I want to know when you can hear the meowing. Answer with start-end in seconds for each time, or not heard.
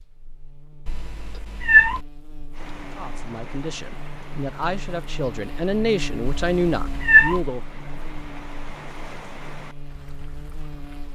0.8-2.0, 6.2-7.4.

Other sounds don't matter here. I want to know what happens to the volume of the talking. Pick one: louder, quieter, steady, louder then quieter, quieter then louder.
louder.